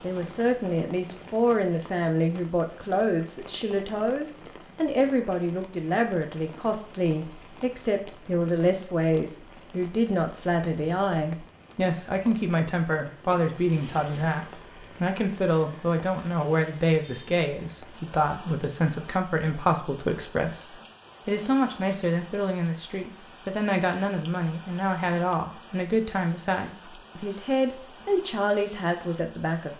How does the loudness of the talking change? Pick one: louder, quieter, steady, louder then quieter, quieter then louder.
steady.